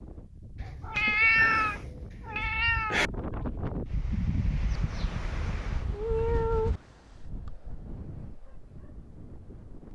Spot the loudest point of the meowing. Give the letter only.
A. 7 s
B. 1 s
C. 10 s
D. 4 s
B.